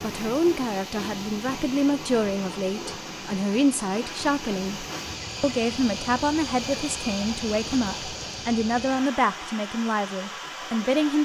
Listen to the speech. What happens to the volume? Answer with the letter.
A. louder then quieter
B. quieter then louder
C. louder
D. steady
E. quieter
D.